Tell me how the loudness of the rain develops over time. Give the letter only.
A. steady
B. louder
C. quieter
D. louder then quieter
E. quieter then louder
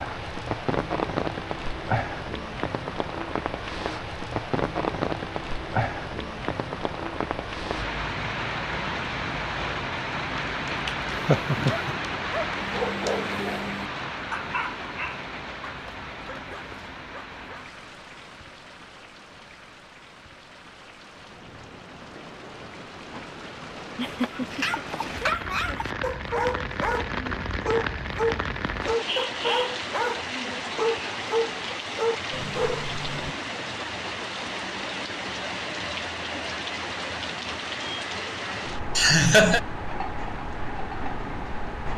E.